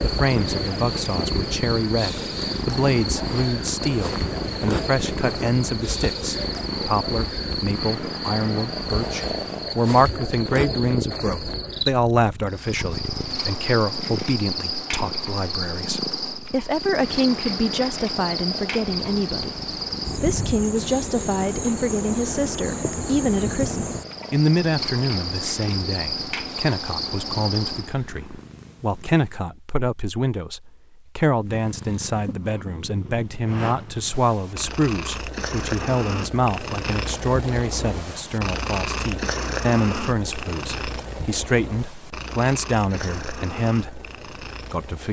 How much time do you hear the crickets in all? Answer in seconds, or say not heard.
28 s.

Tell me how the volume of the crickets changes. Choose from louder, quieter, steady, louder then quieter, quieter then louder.
steady.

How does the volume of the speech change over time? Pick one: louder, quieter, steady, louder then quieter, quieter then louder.
steady.